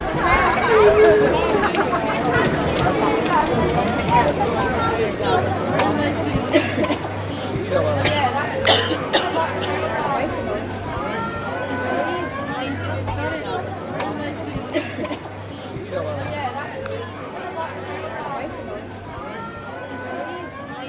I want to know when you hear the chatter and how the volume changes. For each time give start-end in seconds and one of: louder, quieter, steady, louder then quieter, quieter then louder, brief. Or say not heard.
0.0-20.8 quieter.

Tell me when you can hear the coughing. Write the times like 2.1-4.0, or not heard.
8.0-9.7.